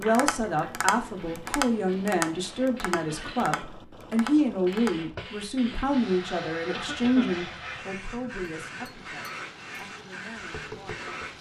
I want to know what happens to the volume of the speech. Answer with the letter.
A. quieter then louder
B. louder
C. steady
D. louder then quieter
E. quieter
E.